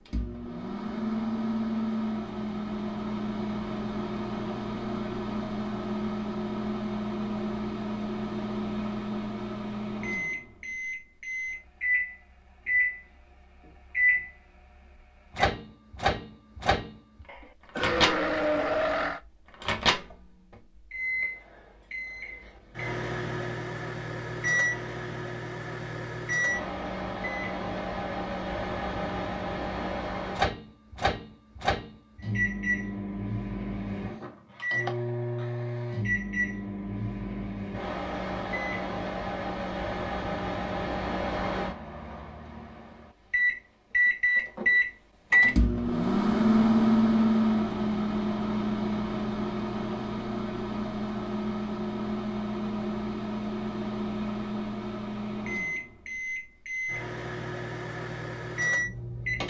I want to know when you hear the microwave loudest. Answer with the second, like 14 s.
47 s.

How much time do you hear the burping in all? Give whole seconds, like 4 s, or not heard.
2 s.